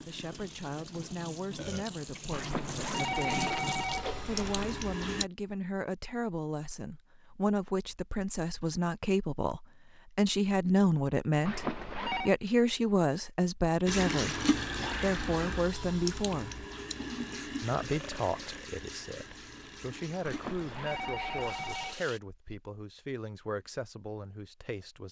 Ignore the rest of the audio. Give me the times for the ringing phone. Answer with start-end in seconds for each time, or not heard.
2.3-4.8, 11.4-12.3, 20.2-22.0.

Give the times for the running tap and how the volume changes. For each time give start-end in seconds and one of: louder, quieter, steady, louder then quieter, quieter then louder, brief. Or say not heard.
0.0-5.2 louder
13.8-22.2 quieter.